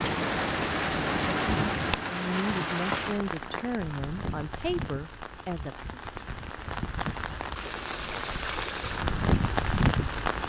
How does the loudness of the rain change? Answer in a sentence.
The loudness of the rain goes down, then up.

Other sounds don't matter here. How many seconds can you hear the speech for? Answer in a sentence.
You can hear the speech for 4 seconds altogether.